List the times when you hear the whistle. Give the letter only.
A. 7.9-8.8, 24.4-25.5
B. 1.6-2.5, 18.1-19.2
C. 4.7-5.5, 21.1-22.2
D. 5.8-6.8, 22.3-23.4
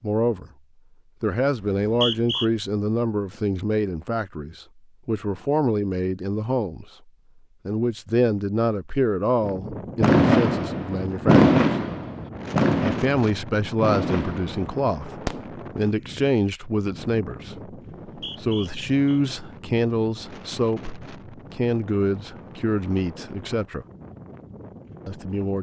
B.